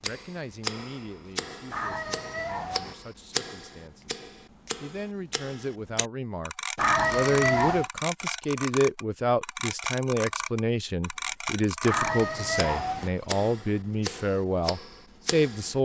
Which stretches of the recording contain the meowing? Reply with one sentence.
You can hear the meowing from 1.7 to 3.0 s, from 6.8 to 7.9 s and from 11.8 to 13.1 s.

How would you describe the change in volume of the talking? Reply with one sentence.
The volume of the talking goes up.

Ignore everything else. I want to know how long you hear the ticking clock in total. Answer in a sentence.
The ticking clock can be heard for 16 seconds in total.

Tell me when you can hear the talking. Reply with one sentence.
You can hear the talking from 0.0 to 4.2 s and from 4.8 to 15.8 s.